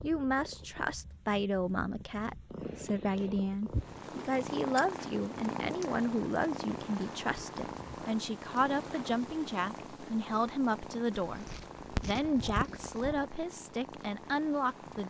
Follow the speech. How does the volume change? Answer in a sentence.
The loudness of the speech stays about the same.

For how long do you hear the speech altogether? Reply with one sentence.
You can hear the speech for 15 seconds altogether.